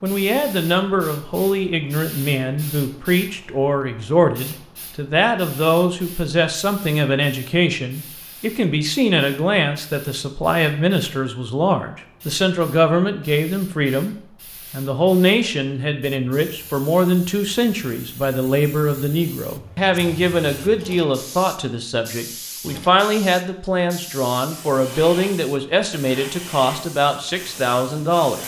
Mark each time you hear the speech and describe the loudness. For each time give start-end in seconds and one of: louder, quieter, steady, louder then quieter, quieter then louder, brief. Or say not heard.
0.0-28.4 steady.